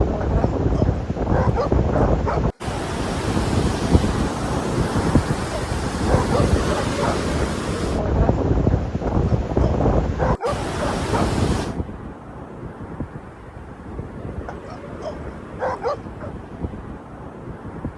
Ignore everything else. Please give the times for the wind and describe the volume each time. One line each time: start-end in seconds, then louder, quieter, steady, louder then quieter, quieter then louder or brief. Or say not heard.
0.0-17.9 quieter.